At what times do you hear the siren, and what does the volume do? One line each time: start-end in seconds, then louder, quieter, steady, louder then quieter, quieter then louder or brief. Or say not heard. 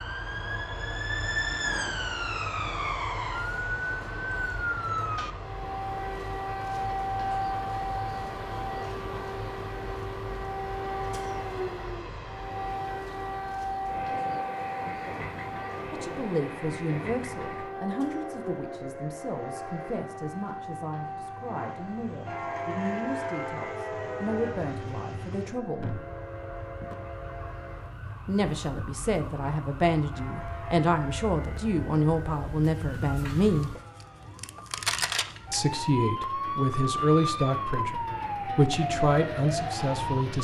0.0-40.4 quieter then louder.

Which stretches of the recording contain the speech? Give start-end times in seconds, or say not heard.
15.9-26.0, 28.2-33.7, 35.5-40.4.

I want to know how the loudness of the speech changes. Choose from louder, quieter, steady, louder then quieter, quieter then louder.
louder.